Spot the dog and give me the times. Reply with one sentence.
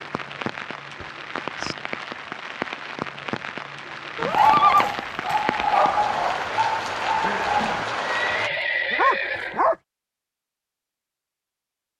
You can hear the dog from 4.3 to 9.8 s.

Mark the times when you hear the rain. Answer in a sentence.
You can hear the rain from 0.0 to 8.5 s.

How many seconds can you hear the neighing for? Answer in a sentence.
The neighing can be heard for 3 seconds in total.